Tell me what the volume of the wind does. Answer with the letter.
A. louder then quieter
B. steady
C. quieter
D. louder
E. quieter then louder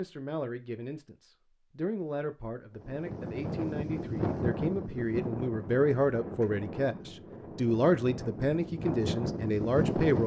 E.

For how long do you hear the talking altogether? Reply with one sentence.
The talking can be heard for 10 seconds in total.